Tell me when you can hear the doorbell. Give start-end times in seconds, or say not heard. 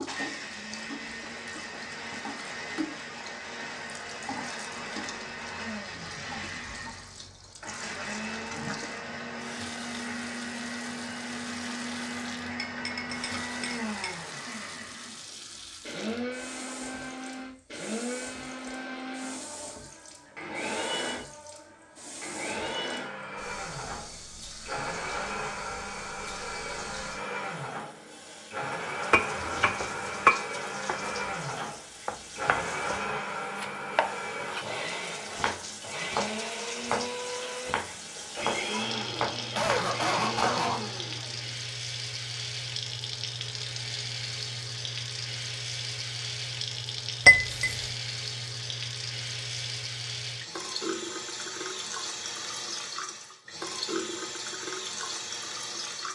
not heard.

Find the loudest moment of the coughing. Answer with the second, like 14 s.
40 s.